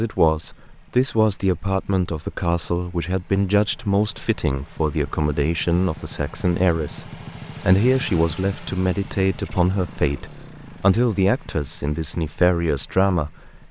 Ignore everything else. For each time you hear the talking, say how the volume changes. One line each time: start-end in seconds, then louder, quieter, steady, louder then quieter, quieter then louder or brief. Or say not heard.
0.0-13.6 steady.